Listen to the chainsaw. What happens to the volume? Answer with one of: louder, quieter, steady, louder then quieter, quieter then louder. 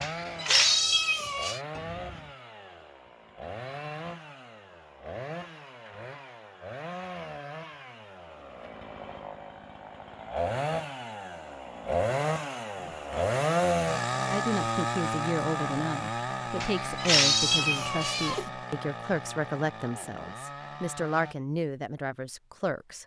louder then quieter.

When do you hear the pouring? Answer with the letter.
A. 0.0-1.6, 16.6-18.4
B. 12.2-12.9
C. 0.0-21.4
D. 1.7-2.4
D.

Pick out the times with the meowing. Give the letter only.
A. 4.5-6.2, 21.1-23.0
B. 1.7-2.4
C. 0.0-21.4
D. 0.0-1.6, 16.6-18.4
D.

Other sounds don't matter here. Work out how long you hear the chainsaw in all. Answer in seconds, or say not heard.
21 s.